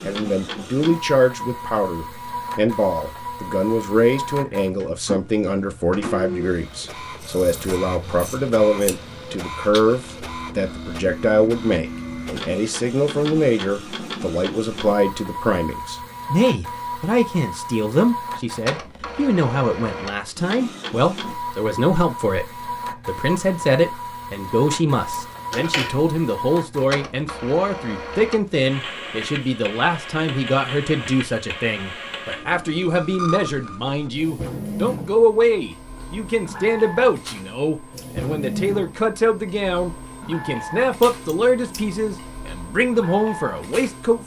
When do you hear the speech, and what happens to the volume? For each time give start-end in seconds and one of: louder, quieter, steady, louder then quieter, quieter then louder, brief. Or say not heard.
0.1-22.4 steady
23.1-44.2 steady.